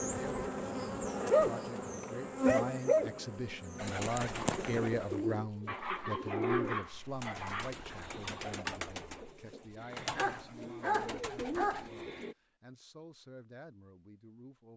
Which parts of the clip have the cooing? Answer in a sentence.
The cooing can be heard from 3.8 to 12.3 s.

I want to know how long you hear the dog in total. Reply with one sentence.
The dog can be heard for 6 seconds in total.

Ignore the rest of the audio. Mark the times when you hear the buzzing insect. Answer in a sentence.
You can hear the buzzing insect from 0.0 to 5.3 s.